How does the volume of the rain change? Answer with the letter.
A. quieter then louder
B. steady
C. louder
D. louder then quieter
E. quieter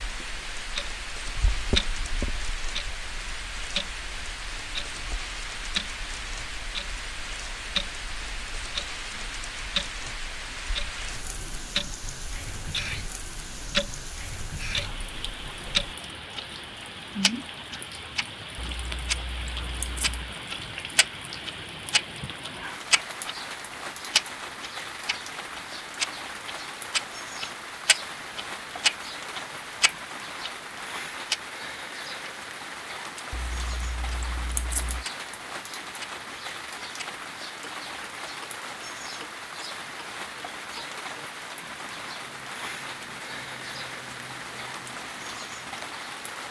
B.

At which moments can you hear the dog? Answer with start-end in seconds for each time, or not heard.
not heard.